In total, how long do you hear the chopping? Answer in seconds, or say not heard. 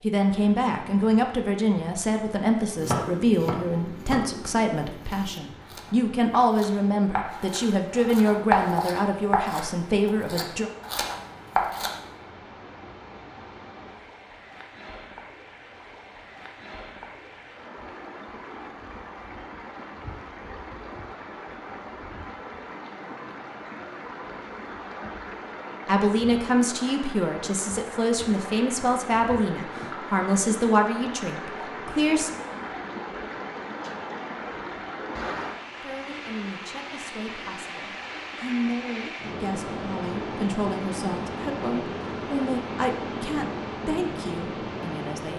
9 s.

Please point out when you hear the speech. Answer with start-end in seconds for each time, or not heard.
0.0-10.7, 25.9-32.3, 35.8-45.3.